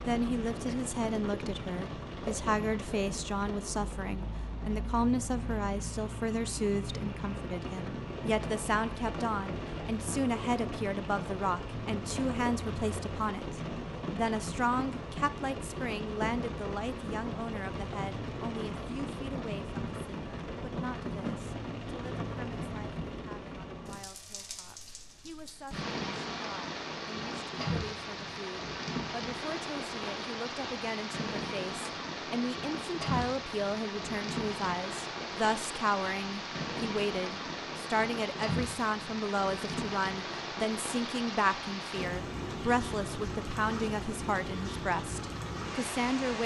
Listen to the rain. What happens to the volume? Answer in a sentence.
The volume of the rain stays about the same.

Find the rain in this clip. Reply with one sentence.
The rain can be heard from 0.0 to 46.4 s.